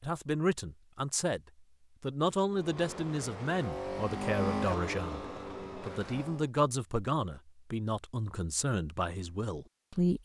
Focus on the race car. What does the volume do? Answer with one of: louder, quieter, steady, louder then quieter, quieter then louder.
louder then quieter.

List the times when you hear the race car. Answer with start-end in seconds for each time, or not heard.
2.5-6.5.